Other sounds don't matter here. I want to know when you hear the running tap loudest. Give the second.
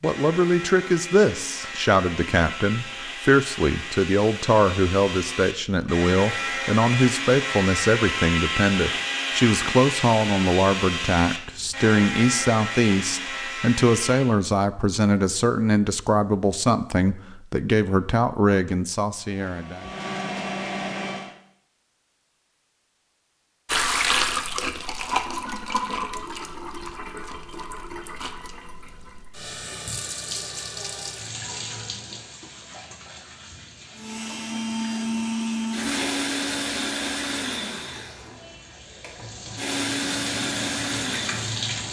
24 s.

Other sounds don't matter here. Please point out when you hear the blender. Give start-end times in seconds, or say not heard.
0.0-14.3, 19.3-21.4, 34.0-41.8.